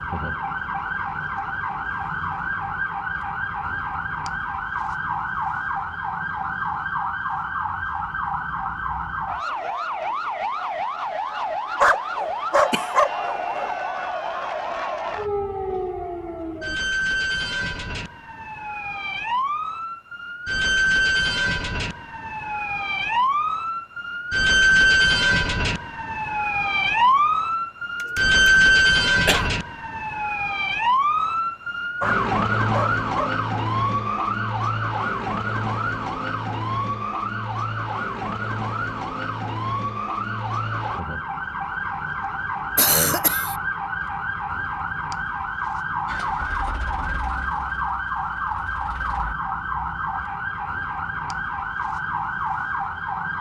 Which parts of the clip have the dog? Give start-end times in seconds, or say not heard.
11.8-13.7, 32.0-33.3.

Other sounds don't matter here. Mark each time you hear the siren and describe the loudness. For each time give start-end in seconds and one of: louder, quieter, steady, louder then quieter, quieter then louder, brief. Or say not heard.
0.0-53.3 louder then quieter.